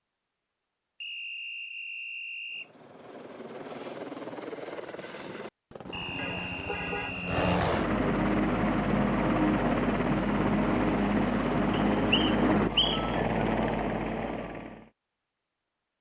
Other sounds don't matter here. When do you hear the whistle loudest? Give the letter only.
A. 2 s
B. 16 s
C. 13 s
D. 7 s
C.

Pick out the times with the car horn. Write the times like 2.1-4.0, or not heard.
6.2-7.2.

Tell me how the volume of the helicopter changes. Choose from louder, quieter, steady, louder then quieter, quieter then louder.
louder.